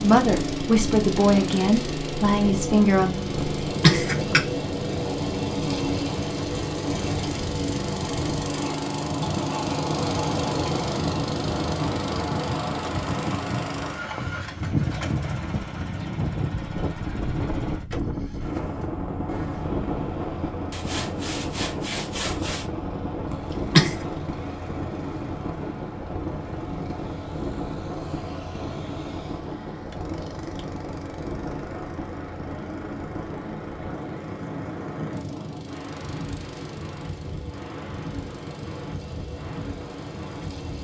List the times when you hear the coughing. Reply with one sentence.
The coughing can be heard from 3.4 to 4.4 s and from 23.2 to 23.9 s.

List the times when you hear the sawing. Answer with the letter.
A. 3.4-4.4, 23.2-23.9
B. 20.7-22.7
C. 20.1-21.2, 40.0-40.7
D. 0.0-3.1
B.